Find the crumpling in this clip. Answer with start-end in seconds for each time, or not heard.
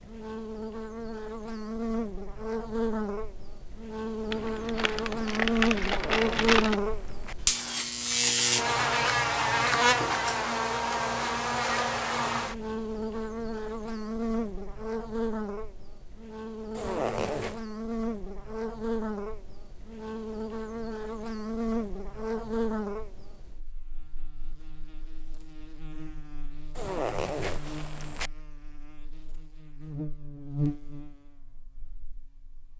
4.3-6.8.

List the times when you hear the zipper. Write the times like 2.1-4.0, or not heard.
5.8-7.3, 16.7-17.6, 26.8-28.3.